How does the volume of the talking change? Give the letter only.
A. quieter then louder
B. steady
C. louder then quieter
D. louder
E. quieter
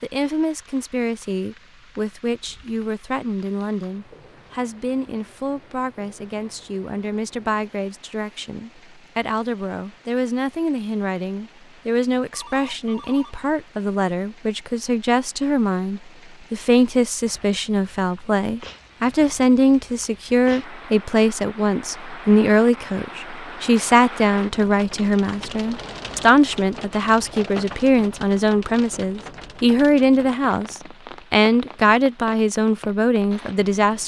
D.